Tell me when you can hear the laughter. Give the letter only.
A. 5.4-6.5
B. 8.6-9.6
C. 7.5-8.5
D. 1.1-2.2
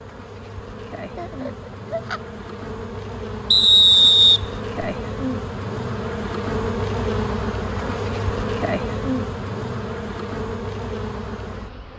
D.